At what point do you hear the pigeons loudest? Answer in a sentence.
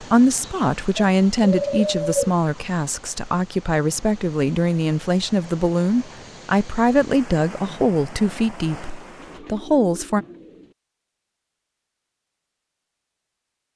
The volume of the pigeons peaks at 2 seconds.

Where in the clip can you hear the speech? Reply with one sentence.
You can hear the speech from 0.0 to 10.2 s.